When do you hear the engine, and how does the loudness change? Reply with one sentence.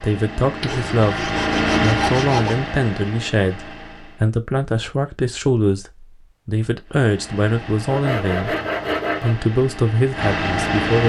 The engine can be heard from 0.0 to 4.2 s, getting louder then quieter; and from 6.8 to 11.0 s, getting louder.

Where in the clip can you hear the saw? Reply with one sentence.
The saw can be heard from 0.6 to 2.6 s and from 7.8 to 9.3 s.